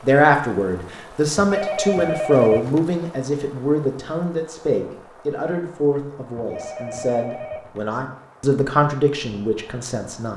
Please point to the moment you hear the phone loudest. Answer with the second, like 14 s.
2 s.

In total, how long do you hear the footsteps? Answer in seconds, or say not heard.
not heard.